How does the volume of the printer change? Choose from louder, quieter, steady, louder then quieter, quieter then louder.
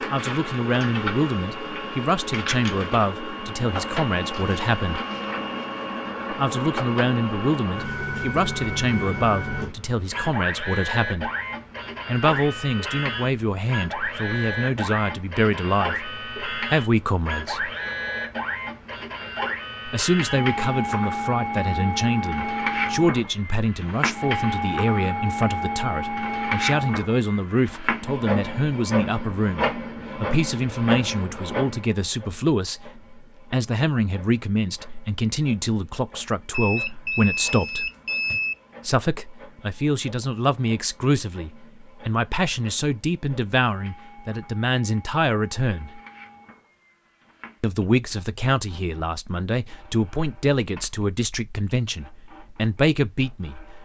quieter.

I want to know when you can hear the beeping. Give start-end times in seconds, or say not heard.
36.5-38.5.